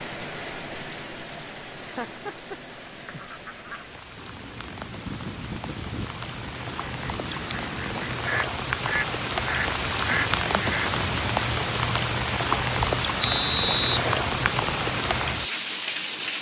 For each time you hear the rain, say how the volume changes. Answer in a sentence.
You can hear the rain from 0.0 to 16.3 s, getting louder.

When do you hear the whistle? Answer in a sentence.
You can hear the whistle from 13.2 to 14.7 s.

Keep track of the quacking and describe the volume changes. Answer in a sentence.
The loudness of the quacking goes up.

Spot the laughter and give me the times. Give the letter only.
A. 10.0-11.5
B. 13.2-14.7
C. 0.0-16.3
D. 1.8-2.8
D.